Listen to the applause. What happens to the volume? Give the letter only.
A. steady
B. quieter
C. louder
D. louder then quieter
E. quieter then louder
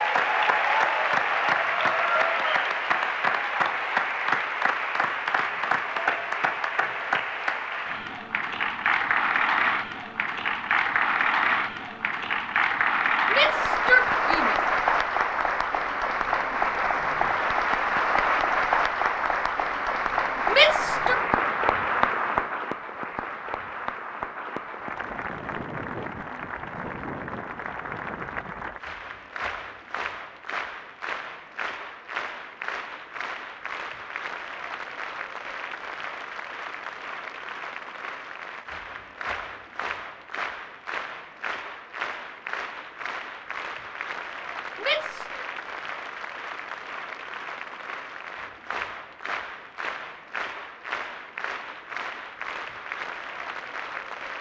B.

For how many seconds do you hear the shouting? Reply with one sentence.
The shouting can be heard for 3 seconds in total.